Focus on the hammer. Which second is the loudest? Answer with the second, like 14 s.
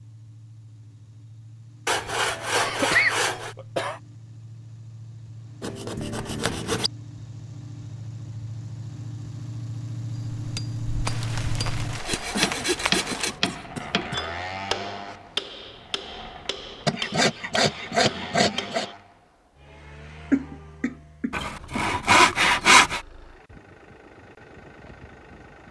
13 s.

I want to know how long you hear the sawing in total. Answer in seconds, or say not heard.
9 s.